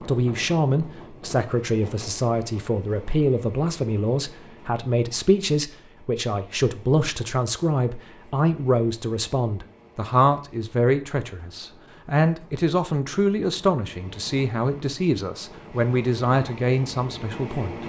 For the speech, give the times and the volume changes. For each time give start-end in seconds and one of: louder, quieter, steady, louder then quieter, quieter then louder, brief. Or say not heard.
0.0-17.8 steady.